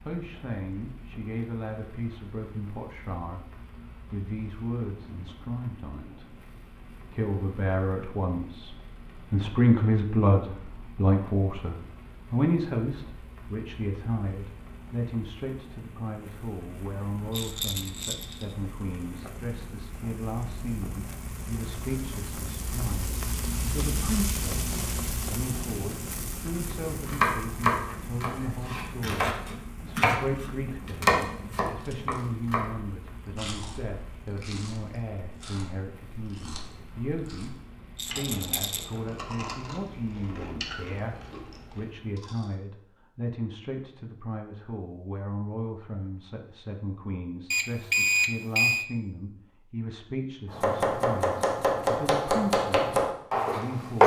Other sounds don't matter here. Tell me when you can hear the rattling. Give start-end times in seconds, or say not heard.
17.3-18.6, 38.0-38.9.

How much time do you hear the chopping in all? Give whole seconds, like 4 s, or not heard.
9 s.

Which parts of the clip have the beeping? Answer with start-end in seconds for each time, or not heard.
47.5-48.9.